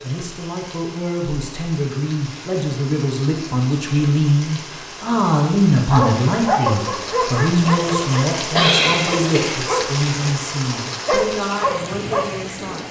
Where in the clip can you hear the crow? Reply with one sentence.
You can't hear the crow here.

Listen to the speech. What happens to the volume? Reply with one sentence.
The volume of the speech goes up, then down.